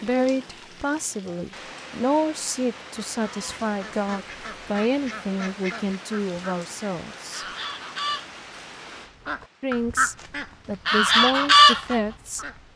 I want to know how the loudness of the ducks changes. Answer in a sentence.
The volume of the ducks goes up.